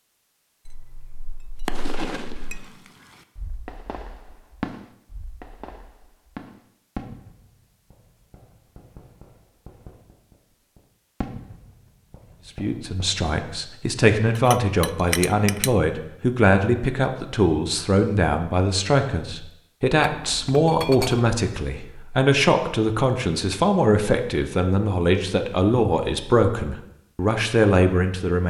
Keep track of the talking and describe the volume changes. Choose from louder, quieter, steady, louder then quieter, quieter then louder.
steady.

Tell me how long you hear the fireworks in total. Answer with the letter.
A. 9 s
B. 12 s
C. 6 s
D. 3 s
B.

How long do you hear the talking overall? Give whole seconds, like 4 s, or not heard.
16 s.